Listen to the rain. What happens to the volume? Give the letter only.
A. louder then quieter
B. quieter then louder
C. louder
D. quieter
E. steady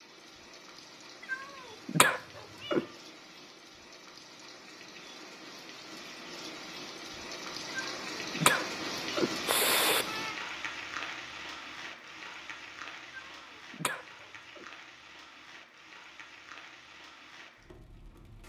A.